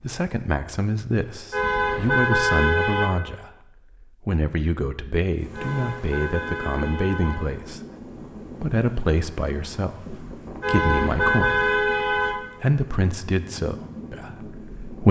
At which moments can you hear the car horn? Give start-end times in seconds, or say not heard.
1.5-3.1, 5.5-7.5, 10.6-12.3.